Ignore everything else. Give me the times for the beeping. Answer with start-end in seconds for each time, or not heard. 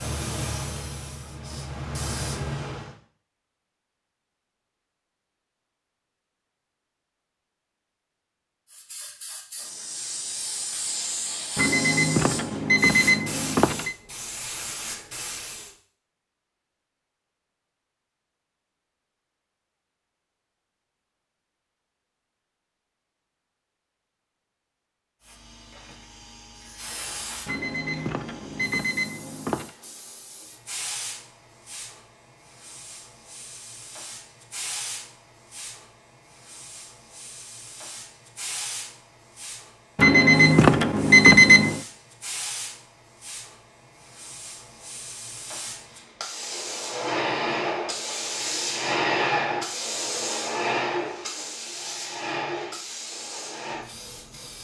11.6-13.9, 27.4-29.7, 40.0-41.8.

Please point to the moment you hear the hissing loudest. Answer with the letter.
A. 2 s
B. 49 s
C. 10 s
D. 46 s
B.